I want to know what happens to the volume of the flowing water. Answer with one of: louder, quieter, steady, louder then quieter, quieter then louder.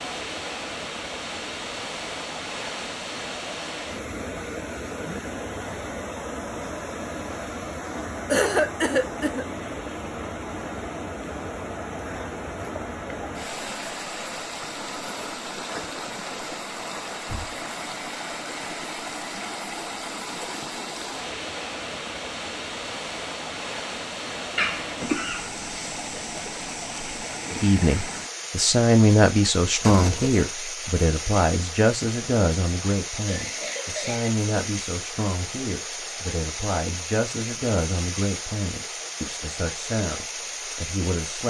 steady.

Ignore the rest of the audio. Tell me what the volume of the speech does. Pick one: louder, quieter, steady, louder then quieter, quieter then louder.
quieter.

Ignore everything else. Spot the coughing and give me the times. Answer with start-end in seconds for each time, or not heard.
8.3-9.4, 24.6-25.5, 33.2-34.3.